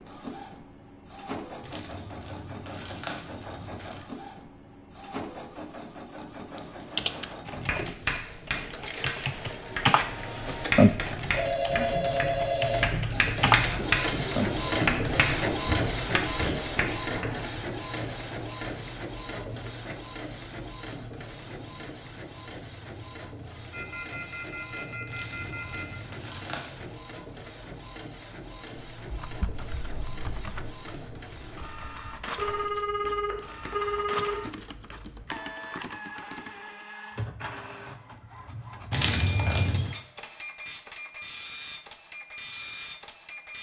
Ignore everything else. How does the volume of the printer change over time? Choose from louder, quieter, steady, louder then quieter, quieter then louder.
louder then quieter.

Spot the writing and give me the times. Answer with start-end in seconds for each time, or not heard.
7.5-17.4.